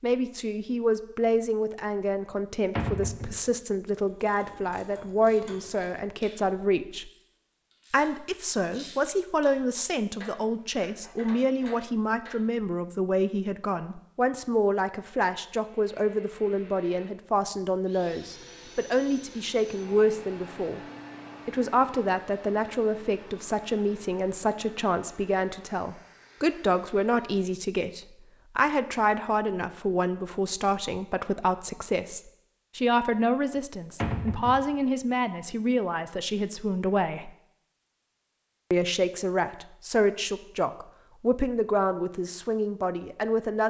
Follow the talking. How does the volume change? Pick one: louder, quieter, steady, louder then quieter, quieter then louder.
steady.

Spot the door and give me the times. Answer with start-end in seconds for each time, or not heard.
2.8-3.5, 34.0-34.8.